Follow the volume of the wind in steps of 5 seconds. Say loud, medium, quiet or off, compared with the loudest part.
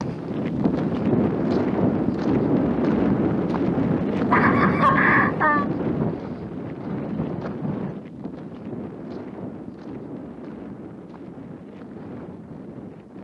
loud, medium, quiet.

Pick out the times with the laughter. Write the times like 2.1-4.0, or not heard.
4.2-5.7.